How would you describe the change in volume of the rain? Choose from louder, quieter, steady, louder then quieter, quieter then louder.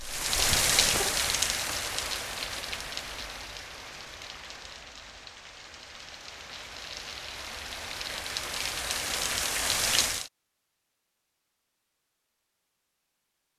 quieter then louder.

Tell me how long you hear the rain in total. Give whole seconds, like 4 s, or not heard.
10 s.